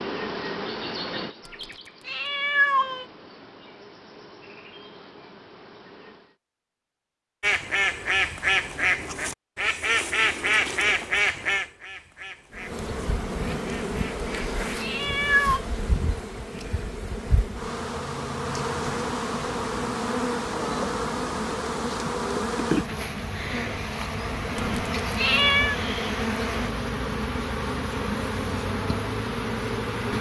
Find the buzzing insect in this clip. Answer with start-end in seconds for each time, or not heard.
0.0-6.3, 12.5-30.1.